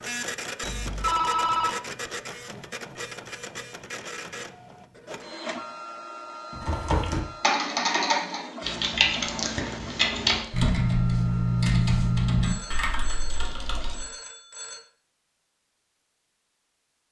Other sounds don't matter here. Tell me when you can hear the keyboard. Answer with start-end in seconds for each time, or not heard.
6.5-14.1.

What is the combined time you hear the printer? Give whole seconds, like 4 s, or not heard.
14 s.